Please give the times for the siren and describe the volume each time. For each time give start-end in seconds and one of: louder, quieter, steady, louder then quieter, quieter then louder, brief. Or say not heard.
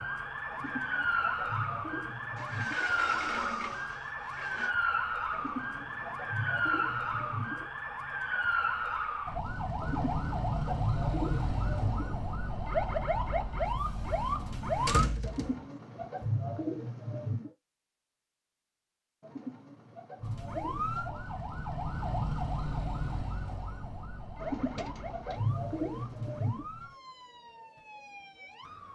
0.0-15.1 steady
20.2-28.8 quieter.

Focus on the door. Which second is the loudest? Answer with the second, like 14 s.
15 s.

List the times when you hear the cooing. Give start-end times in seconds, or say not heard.
0.5-2.9, 5.3-7.7, 9.8-12.2, 15.2-17.5, 19.2-21.2, 24.4-26.6.